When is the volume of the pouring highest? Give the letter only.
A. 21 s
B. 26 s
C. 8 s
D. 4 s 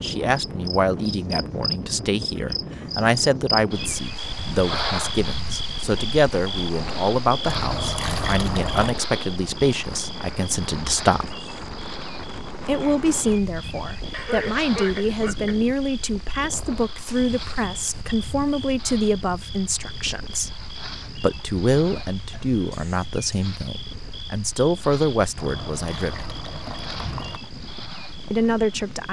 C.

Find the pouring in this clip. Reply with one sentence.
The pouring can be heard from 7.5 to 8.9 s and from 25.4 to 27.4 s.